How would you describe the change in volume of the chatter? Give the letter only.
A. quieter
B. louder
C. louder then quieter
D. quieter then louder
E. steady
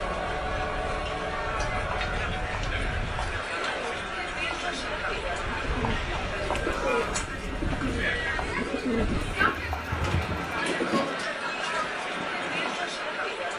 E.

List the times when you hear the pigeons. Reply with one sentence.
The pigeons can be heard from 3.5 to 11.2 s.